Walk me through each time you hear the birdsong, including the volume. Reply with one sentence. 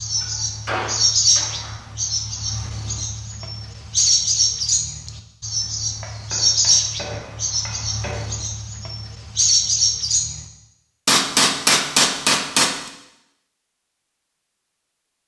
You can hear the birdsong from 0.0 to 10.4 s, at a steady volume.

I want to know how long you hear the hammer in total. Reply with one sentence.
The hammer can be heard for 6 seconds in total.